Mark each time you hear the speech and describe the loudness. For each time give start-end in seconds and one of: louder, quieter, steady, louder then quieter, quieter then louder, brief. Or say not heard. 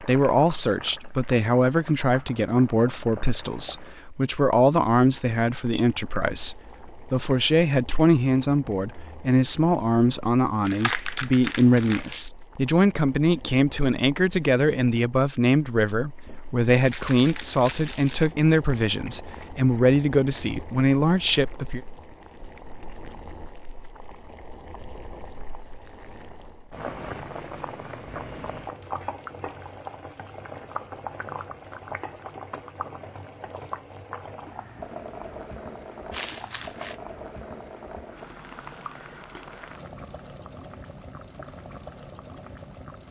0.0-21.8 steady.